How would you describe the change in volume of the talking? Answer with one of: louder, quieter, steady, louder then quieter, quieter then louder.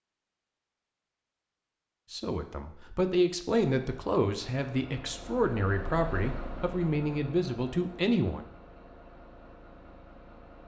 steady.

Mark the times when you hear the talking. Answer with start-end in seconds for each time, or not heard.
2.1-8.4.